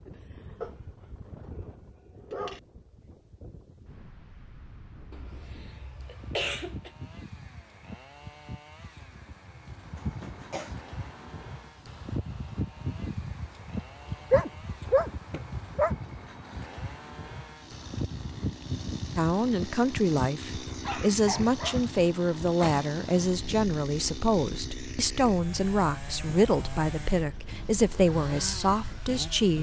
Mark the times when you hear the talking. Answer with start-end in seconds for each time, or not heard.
19.1-29.5.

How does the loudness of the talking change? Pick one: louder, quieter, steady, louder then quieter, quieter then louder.
steady.